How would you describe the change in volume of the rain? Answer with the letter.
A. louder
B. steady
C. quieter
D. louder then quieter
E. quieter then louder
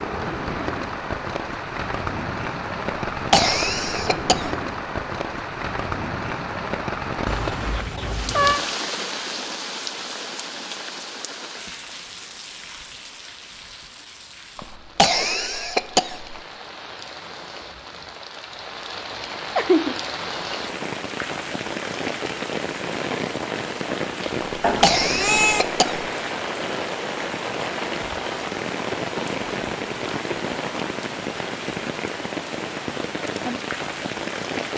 E.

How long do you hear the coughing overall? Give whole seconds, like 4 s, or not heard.
5 s.